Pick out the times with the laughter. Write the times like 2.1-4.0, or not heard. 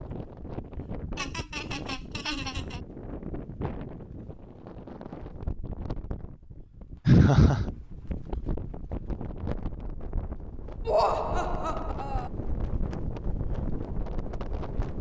1.1-2.8, 7.0-7.7, 10.8-12.3.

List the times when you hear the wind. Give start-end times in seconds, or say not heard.
0.0-14.9.